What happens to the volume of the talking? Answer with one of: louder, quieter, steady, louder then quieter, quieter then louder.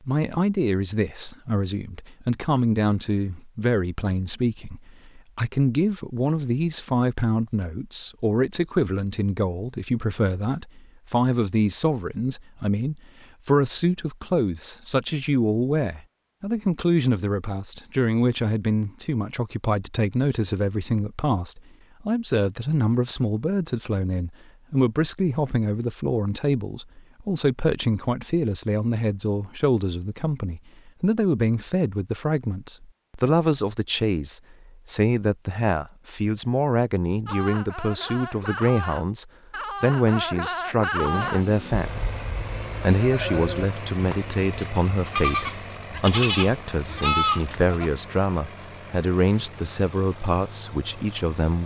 steady.